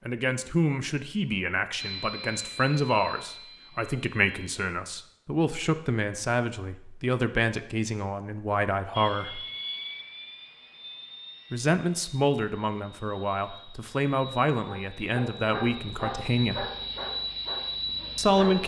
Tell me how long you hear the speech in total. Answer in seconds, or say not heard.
15 s.